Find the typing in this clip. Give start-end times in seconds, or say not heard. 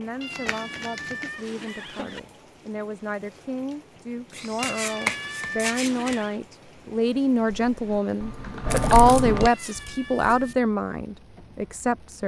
7.7-9.5.